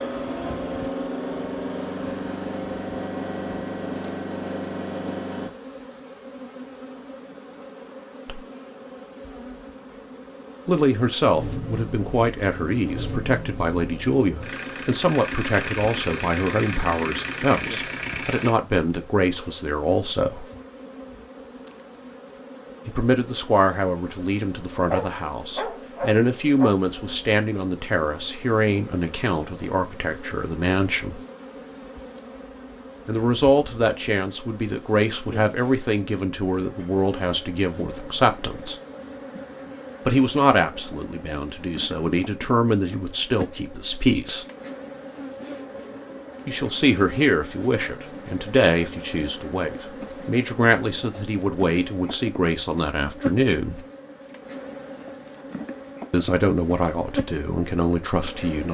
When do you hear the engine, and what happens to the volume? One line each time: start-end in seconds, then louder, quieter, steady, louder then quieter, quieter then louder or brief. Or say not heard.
0.0-5.5 steady
11.3-18.5 louder.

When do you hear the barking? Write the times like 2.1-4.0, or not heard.
24.8-26.8.